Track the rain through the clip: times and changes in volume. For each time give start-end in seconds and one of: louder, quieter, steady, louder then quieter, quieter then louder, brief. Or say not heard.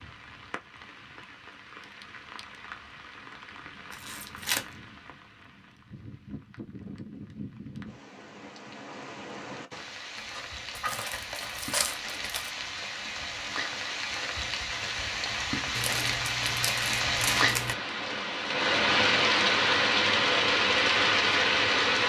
0.0-22.0 louder.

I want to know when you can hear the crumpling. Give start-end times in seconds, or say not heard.
3.9-4.7, 10.2-12.5, 15.8-17.8.